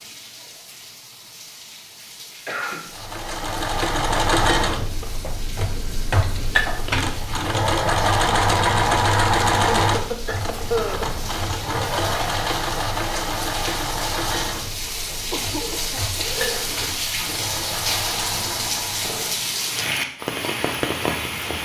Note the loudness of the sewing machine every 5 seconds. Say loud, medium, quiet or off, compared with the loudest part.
loud, loud, medium, quiet, off.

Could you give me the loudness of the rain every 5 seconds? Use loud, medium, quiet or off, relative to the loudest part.
quiet, quiet, medium, loud, loud.